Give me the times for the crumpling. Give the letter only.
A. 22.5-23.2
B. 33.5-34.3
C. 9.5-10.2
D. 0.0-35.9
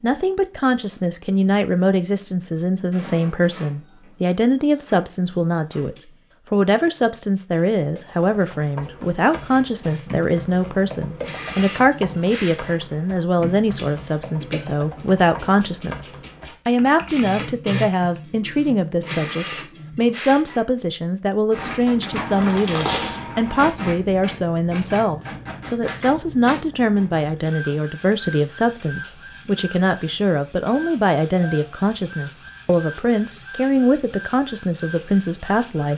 A.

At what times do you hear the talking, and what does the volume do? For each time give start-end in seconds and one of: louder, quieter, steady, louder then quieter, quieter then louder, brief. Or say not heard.
0.0-35.9 steady.